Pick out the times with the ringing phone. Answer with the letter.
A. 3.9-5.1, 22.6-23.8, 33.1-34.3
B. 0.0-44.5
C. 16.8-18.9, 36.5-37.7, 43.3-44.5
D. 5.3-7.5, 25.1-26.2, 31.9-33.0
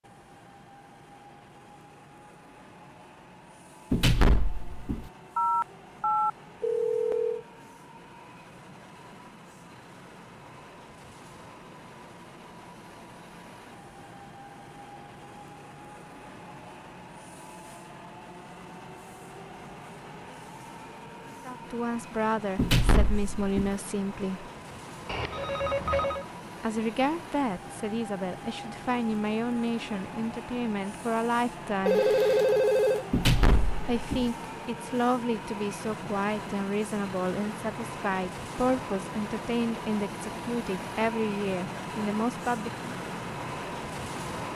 D.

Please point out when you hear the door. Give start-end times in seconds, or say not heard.
3.9-5.1, 22.6-23.8, 33.1-34.3.